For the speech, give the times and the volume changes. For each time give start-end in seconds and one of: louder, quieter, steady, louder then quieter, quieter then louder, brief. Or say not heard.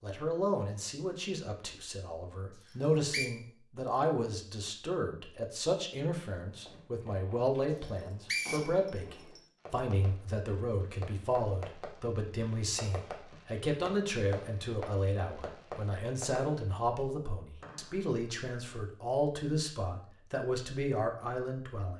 0.0-21.9 steady.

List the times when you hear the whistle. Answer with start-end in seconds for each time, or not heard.
2.6-3.3, 7.8-9.4, 17.6-18.2.